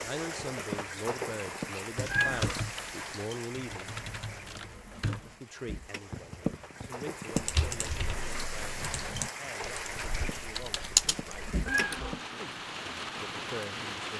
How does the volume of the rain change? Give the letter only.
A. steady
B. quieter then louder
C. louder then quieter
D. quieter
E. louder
B.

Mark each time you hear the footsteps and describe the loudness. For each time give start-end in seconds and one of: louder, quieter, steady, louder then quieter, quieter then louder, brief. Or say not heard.
not heard.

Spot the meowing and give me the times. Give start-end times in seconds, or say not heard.
0.3-2.6, 6.1-7.5, 9.9-12.2.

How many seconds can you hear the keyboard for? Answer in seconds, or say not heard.
8 s.